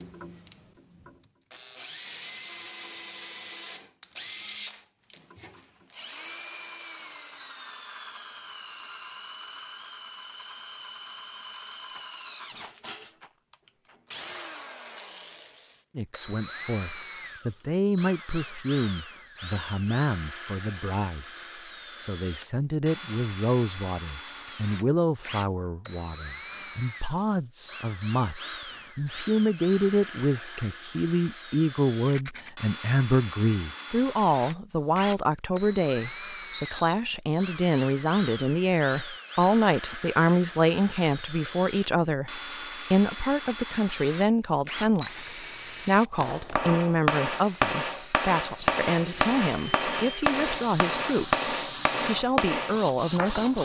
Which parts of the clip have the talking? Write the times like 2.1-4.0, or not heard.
15.9-53.5.